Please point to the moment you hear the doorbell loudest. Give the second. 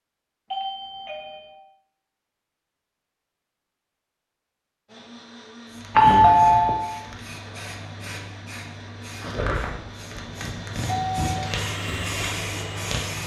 6 s.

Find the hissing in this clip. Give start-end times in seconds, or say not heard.
5.7-13.2.